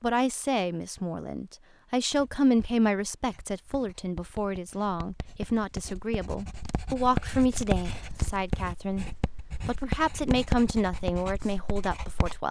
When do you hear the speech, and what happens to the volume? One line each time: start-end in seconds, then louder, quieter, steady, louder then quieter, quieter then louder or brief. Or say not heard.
0.0-12.4 steady.